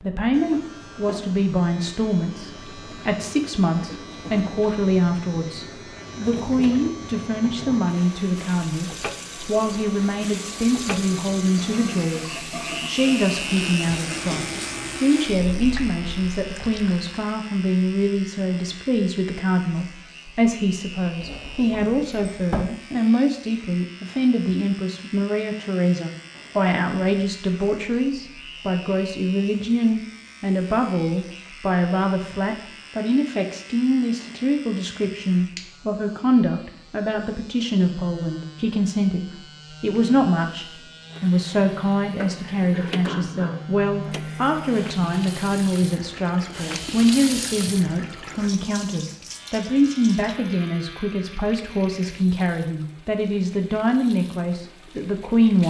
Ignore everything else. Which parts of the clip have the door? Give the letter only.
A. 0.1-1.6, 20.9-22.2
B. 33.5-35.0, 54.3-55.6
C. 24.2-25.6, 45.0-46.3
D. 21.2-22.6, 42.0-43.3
D.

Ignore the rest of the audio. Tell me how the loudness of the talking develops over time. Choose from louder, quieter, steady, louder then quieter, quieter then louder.
steady.